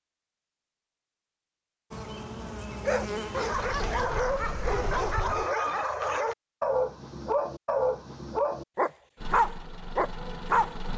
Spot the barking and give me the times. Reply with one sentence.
The barking can be heard from 2.8 to 10.8 s.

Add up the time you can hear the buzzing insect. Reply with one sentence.
The buzzing insect can be heard for 2 seconds in total.